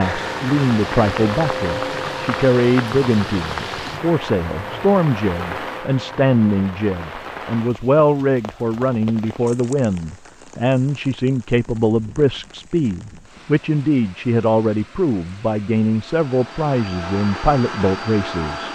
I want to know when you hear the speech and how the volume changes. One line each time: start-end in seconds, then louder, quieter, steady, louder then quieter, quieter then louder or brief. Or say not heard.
0.0-18.7 steady.